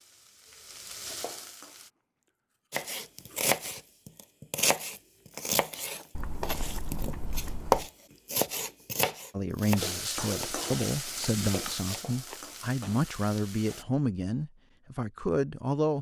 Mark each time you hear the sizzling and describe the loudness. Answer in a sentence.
You can hear the sizzling briefly from 0.0 to 1.9 s; and from 9.8 to 13.8 s, getting quieter.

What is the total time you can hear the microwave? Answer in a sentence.
You can't hear the microwave here.